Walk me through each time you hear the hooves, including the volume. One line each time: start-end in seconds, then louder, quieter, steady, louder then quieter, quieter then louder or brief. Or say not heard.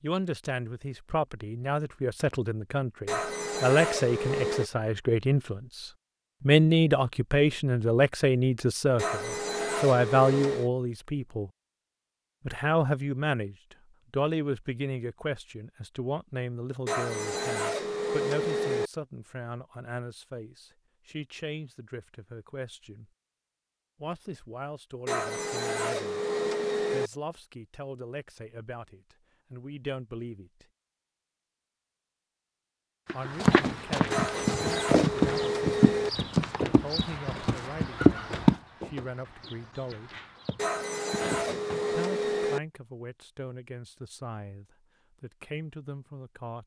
33.0-42.0 quieter.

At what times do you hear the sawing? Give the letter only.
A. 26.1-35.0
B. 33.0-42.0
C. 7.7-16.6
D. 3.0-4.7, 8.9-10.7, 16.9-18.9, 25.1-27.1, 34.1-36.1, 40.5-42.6
D.